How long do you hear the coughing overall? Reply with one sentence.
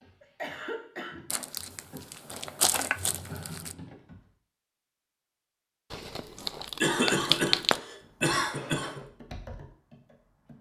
The coughing can be heard for 4 seconds in total.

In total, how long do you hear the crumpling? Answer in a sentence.
You can hear the crumpling for 4 seconds altogether.